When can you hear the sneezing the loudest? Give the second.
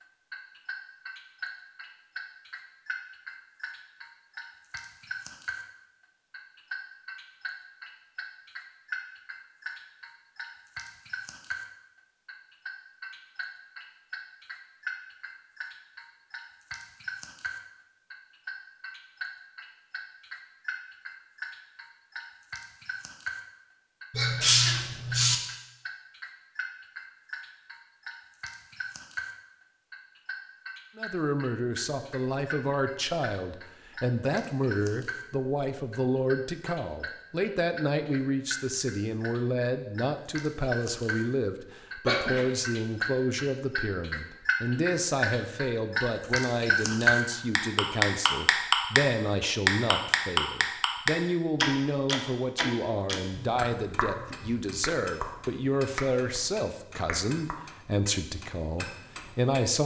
25 s.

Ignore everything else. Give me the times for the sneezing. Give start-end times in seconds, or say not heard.
24.1-25.4, 42.0-42.5.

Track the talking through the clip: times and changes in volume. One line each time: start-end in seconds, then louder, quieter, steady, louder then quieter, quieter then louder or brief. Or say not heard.
30.9-59.8 steady.